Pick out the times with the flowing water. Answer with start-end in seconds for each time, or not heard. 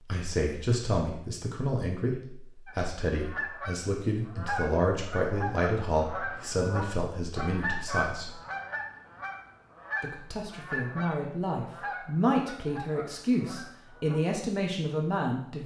not heard.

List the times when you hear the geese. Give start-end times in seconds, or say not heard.
2.6-14.3.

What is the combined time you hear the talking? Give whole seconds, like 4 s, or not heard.
14 s.